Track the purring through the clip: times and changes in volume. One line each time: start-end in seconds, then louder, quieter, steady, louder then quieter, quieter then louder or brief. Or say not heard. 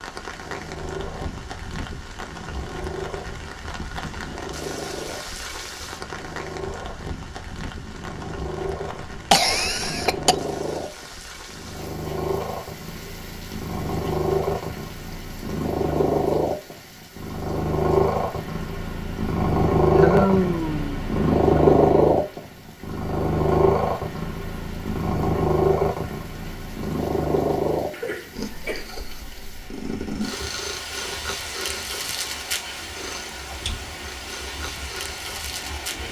0.1-36.0 louder then quieter.